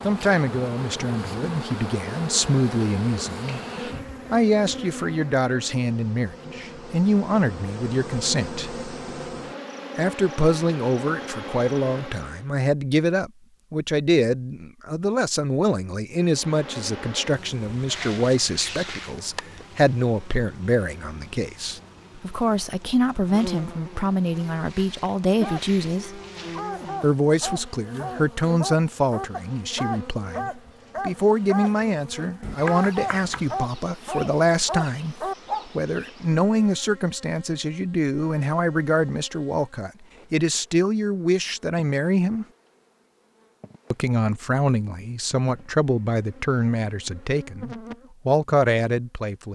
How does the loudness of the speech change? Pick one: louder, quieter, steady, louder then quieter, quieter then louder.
steady.